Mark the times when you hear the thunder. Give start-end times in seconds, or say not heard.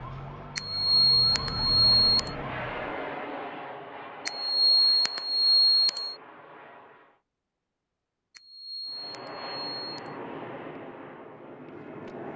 not heard.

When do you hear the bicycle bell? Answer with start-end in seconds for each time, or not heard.
0.6-2.4, 4.2-6.2, 8.3-10.2.